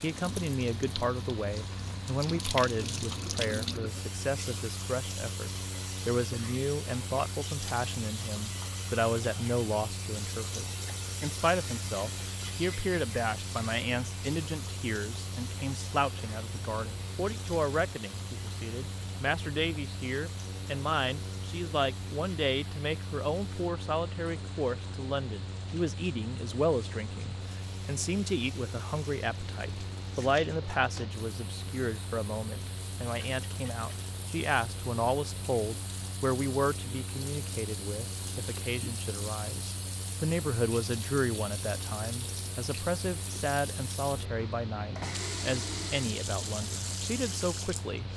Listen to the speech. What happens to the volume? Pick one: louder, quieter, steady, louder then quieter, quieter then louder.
steady.